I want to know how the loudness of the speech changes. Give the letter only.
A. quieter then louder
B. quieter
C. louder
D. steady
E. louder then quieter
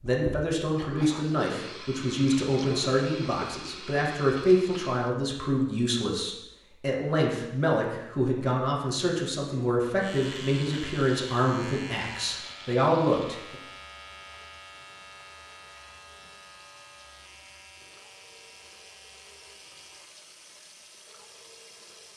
D.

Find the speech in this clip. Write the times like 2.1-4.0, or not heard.
0.0-13.6.